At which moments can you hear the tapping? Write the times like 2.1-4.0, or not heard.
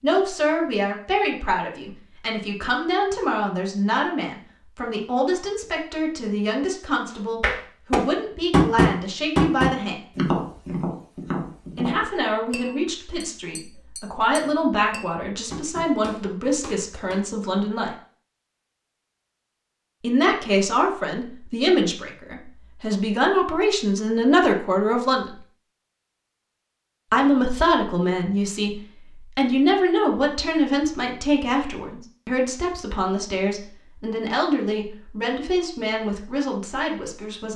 7.4-17.2.